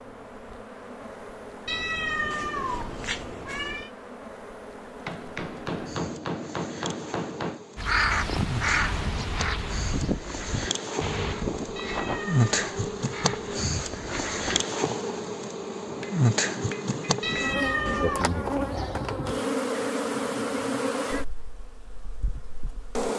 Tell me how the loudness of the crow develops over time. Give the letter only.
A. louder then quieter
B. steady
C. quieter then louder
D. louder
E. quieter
E.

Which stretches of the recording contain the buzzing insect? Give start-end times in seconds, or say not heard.
0.0-23.1.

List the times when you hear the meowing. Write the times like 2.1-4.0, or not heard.
1.6-3.9, 11.8-12.5, 17.2-18.2.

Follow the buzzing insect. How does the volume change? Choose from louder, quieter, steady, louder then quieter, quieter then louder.
louder.